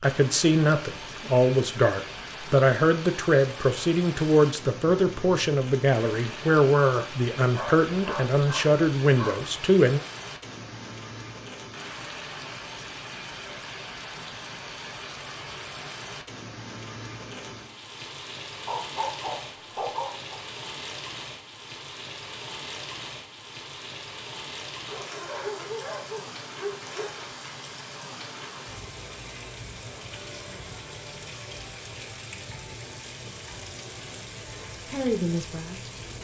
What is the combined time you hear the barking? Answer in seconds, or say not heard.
7 s.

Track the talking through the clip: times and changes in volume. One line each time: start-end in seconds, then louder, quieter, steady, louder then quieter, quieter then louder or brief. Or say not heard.
0.0-10.0 steady
34.5-36.0 brief.